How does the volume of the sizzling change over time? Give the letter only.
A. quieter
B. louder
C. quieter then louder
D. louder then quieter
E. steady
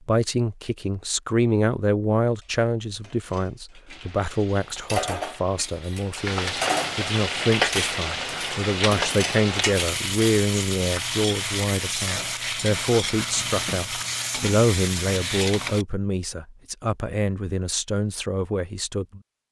B.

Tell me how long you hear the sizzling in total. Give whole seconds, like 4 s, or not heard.
12 s.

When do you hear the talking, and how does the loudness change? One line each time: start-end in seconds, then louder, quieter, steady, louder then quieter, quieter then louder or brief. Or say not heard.
0.1-19.4 steady.